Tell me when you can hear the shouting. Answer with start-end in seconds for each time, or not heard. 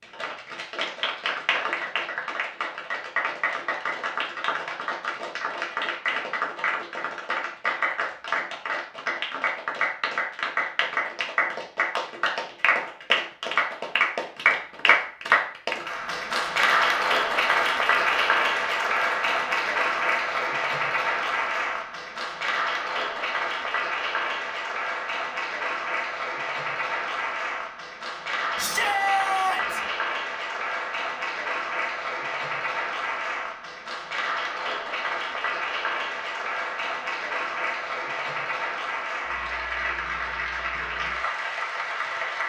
28.6-29.8.